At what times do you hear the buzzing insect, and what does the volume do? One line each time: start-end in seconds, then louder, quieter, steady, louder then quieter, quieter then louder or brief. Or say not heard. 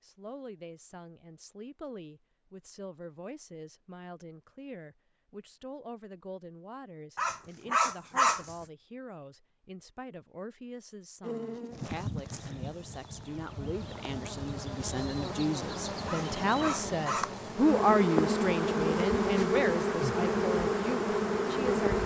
11.2-22.0 louder.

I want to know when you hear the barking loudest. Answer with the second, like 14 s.
8 s.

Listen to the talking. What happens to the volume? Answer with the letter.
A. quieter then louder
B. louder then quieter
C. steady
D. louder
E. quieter
D.